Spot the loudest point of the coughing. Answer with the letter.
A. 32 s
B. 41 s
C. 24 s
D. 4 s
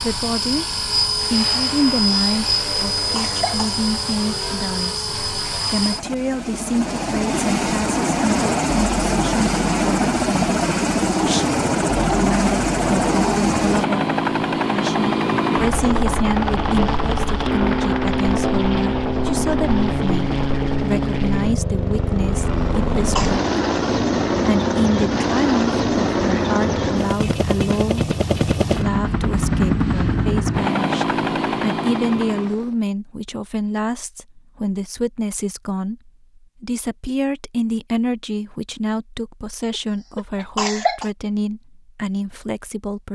B.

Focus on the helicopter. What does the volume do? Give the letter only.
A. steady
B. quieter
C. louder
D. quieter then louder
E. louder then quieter
A.